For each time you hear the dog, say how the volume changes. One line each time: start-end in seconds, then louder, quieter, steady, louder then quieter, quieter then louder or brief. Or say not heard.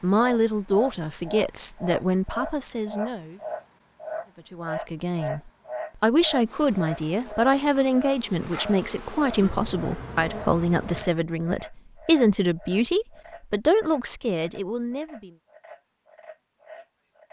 not heard.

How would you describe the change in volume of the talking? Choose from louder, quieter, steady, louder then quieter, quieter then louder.
steady.